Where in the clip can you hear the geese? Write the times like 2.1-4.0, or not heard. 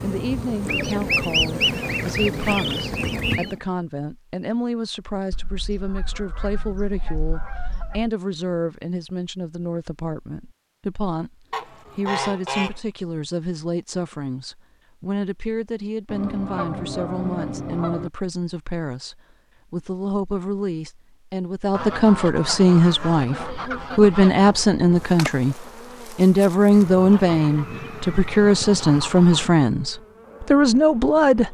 0.7-3.6, 5.3-8.2, 11.5-12.8, 16.1-18.1, 21.7-24.6, 26.6-29.6.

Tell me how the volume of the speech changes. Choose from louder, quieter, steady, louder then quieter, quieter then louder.
louder.